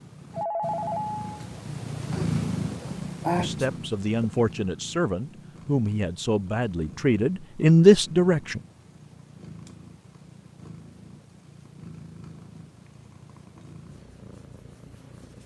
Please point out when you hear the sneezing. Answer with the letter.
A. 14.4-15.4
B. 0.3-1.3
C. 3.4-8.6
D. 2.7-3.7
D.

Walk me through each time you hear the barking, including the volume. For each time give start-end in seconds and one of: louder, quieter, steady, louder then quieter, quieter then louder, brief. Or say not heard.
not heard.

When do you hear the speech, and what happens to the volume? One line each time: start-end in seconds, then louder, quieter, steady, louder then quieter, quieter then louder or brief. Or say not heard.
3.4-8.6 louder.